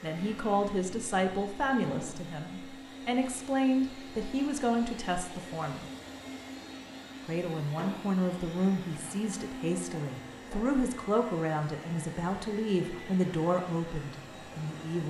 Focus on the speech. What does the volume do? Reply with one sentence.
The loudness of the speech stays about the same.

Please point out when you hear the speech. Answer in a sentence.
The speech can be heard from 0.0 to 5.8 s and from 7.2 to 15.0 s.